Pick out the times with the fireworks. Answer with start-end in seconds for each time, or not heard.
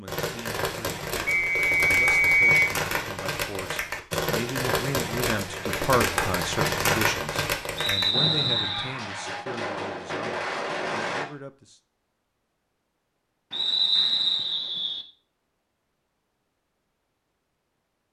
0.1-11.2.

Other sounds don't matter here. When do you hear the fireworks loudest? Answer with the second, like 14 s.
7 s.